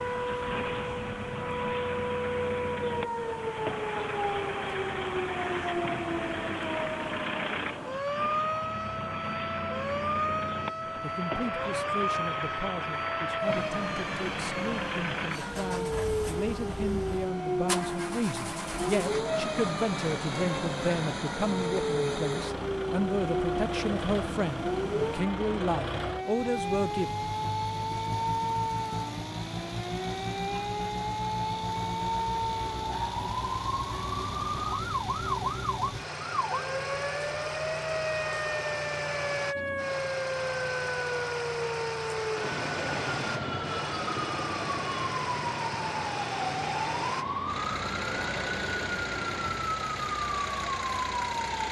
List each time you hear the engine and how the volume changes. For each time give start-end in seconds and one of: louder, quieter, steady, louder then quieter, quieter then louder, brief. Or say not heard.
0.0-51.6 steady.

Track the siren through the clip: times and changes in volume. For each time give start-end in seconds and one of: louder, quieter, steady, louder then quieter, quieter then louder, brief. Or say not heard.
0.0-51.6 steady.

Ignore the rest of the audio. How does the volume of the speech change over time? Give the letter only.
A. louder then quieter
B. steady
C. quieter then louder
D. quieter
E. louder
E.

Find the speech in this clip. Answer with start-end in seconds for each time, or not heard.
10.8-27.1.